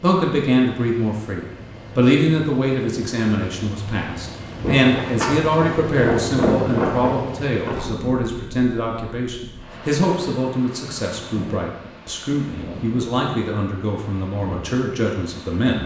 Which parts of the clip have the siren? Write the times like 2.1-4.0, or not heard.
not heard.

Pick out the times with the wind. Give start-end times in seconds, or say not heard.
4.6-15.8.